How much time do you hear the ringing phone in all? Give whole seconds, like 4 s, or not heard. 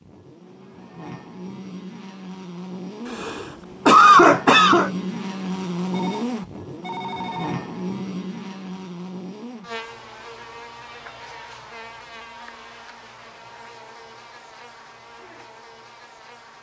2 s.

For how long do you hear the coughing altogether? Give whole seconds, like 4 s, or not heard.
2 s.